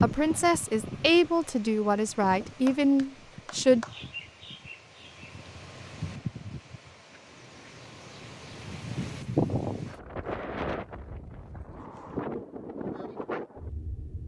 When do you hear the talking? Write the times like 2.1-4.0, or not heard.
0.0-3.9.